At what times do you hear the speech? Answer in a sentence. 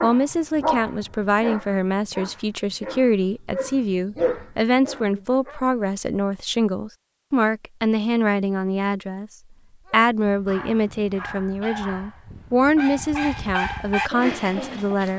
You can hear the speech from 0.0 to 9.3 s and from 9.9 to 15.1 s.